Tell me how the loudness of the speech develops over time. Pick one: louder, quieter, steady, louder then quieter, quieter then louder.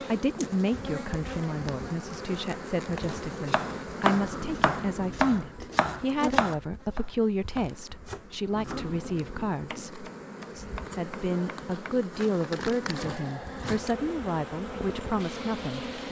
steady.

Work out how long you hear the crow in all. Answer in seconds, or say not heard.
not heard.